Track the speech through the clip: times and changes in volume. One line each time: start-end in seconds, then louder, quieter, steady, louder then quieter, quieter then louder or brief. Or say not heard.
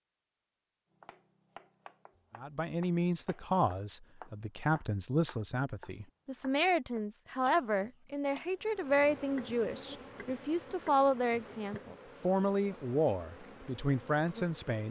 2.4-14.8 steady.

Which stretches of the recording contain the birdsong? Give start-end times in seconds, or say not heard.
not heard.